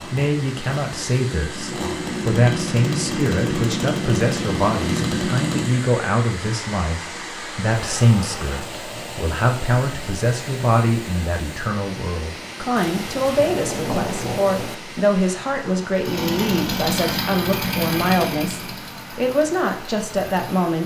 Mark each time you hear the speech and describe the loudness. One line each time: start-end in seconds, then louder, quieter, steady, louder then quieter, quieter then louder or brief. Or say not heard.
0.0-20.8 steady.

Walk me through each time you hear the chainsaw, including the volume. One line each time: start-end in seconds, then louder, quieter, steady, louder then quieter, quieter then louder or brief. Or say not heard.
0.0-5.8 louder
15.9-20.6 quieter.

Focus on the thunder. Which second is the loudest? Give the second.
14 s.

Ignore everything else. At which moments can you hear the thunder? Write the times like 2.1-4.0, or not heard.
12.8-14.8.